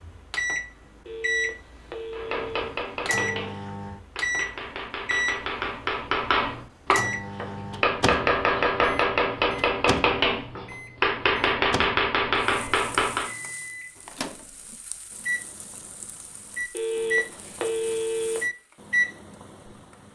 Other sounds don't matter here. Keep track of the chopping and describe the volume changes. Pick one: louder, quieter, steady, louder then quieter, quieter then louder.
louder.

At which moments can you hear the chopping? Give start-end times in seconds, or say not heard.
2.1-13.3.